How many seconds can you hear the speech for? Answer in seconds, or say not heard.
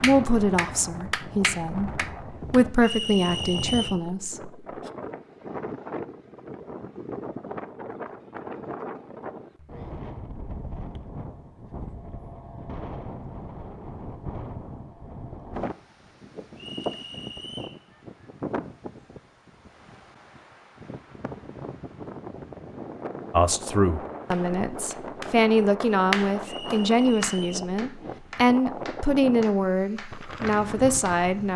13 s.